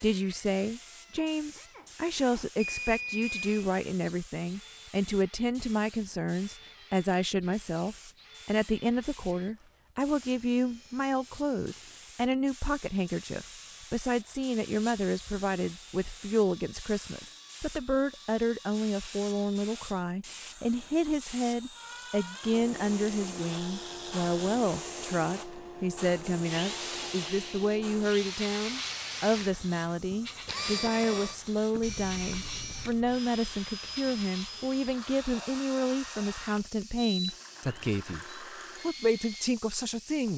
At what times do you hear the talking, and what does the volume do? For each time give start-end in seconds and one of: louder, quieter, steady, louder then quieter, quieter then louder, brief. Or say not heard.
0.0-40.3 steady.